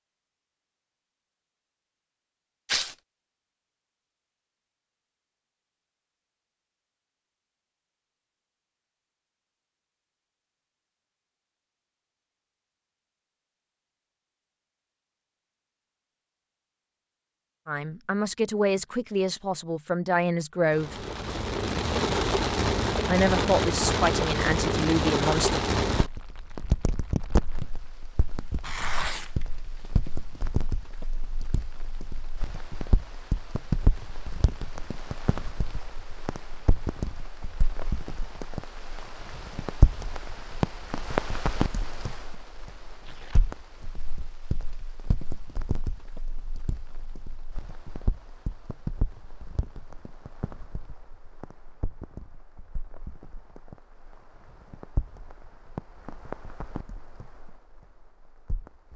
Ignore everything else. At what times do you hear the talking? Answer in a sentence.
The talking can be heard from 17.6 to 21.1 s and from 23.1 to 25.6 s.